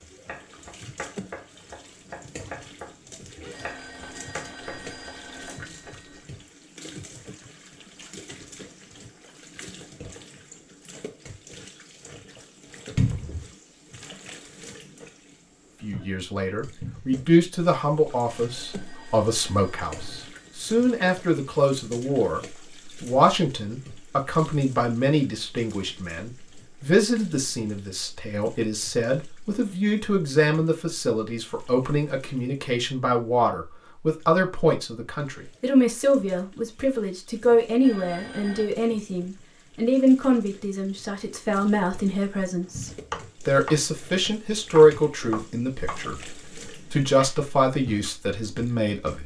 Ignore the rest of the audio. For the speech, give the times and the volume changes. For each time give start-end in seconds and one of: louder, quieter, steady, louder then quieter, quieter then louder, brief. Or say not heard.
15.8-49.2 steady.